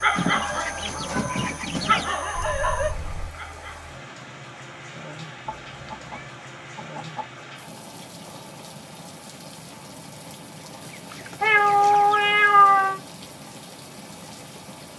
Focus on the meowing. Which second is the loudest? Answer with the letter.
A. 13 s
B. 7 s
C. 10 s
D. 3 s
A.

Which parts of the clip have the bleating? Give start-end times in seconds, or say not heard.
not heard.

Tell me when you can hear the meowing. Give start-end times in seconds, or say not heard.
2.3-3.4, 5.5-6.3, 11.4-13.0.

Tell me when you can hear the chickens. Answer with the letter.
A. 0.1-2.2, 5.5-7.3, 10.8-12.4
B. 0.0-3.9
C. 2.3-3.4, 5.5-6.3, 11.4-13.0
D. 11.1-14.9
A.